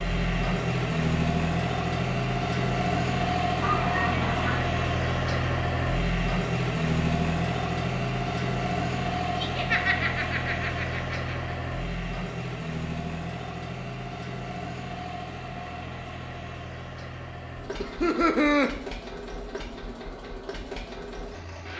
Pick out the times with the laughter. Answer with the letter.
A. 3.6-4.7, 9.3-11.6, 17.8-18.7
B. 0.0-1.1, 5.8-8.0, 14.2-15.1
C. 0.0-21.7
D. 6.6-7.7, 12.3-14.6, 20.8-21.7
A.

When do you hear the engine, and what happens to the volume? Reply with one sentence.
The engine can be heard from 0.0 to 21.7 s, getting quieter.